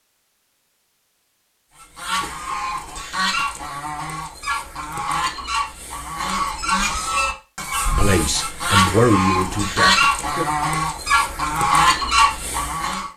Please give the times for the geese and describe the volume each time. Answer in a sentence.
You can hear the geese from 1.8 to 13.1 s, getting louder.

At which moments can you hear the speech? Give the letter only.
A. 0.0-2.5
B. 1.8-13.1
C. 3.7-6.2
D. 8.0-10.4
D.